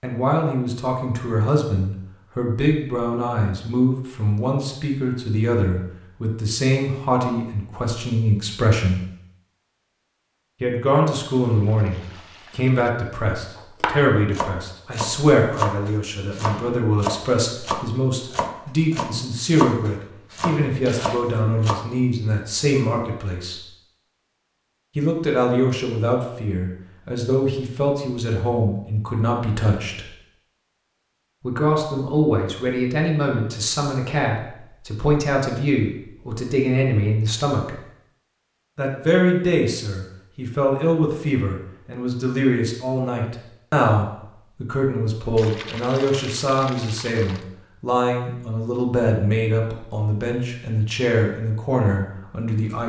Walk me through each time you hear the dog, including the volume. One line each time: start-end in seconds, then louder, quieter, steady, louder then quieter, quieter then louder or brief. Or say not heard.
not heard.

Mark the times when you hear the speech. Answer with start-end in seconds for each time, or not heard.
0.0-9.0, 10.6-23.6, 24.9-30.1, 31.4-37.8, 38.8-52.8.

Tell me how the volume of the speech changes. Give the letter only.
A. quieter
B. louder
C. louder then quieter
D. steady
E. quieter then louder
D.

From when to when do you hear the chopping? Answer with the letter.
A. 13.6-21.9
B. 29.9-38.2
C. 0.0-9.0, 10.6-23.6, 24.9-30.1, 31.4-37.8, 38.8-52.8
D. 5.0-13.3
A.